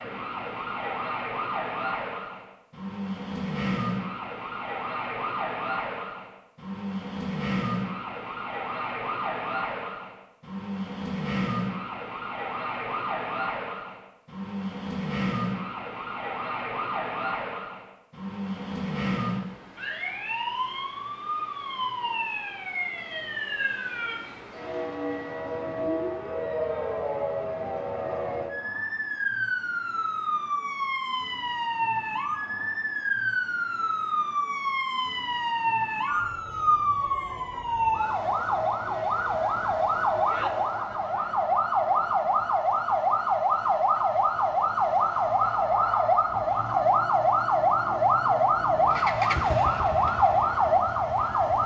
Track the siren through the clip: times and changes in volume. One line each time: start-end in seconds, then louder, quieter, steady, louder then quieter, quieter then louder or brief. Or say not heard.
0.0-51.6 louder.